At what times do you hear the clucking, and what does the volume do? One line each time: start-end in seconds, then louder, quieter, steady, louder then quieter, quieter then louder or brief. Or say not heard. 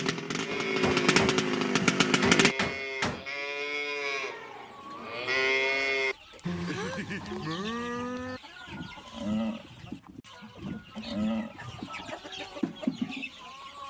4.2-13.8 louder.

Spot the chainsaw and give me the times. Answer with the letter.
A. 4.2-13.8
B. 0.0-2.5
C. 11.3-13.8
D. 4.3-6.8
B.